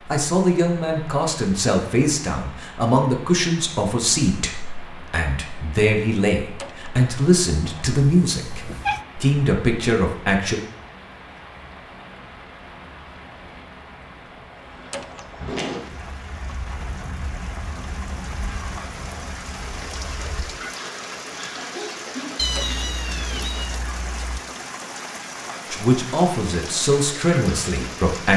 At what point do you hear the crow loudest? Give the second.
16 s.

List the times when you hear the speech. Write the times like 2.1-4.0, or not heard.
0.1-10.6, 25.7-28.3.